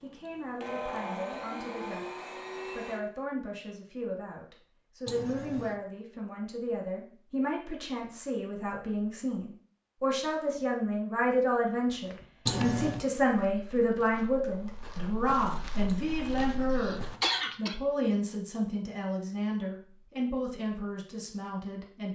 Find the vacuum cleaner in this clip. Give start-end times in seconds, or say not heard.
0.0-3.0.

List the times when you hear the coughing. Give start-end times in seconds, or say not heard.
5.0-5.8, 12.4-13.1, 15.8-17.8.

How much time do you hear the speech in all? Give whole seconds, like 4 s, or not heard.
22 s.